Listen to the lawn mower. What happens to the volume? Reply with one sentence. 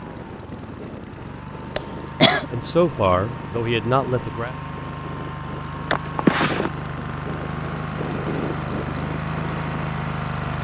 The loudness of the lawn mower goes up.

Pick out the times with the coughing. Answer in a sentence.
You can hear the coughing from 1.8 to 2.5 s and from 5.9 to 6.7 s.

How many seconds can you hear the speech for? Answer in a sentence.
You can hear the speech for 2 seconds altogether.